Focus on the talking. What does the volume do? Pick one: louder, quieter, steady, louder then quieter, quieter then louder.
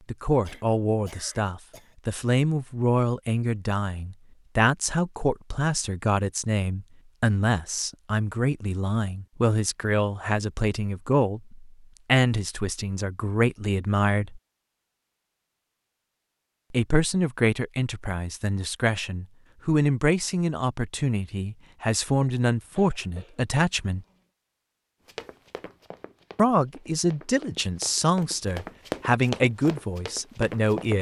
steady.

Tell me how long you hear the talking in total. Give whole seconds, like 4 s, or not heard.
26 s.